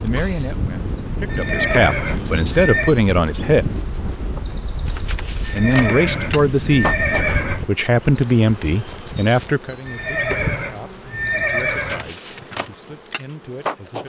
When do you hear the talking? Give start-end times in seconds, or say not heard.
0.0-3.6, 5.5-14.0.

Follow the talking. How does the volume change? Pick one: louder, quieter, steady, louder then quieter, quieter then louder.
louder then quieter.